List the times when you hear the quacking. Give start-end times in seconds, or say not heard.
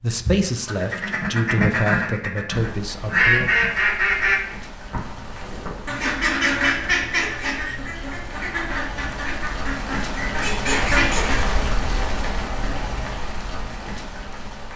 0.2-11.4.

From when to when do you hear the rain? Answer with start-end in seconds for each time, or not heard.
2.5-14.7.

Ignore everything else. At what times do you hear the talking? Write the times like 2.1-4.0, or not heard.
0.0-3.5.